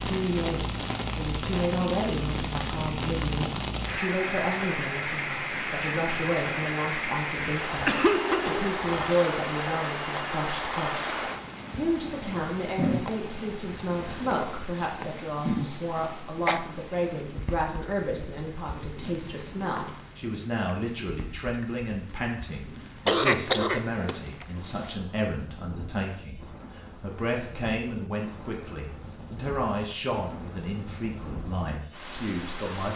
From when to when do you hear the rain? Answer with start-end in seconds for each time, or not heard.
0.0-32.9.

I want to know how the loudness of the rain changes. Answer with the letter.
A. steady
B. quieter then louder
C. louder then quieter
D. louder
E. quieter
E.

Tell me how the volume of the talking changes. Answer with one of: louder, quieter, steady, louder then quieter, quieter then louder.
steady.